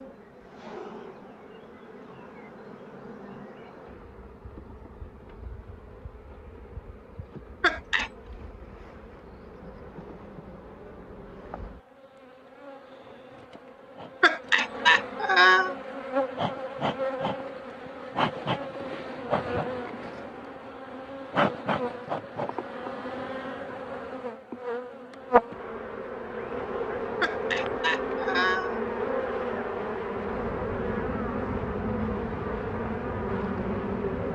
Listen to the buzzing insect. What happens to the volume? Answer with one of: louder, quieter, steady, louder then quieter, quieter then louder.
louder.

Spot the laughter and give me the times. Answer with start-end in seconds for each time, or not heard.
7.6-8.1, 14.2-15.8, 27.2-28.8.